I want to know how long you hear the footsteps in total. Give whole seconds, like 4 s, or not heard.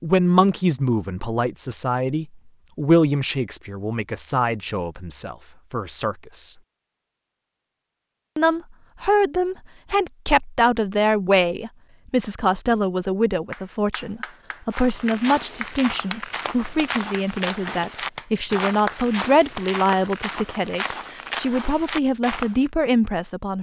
8 s.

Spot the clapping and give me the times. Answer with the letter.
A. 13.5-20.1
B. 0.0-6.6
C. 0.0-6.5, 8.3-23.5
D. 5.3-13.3
A.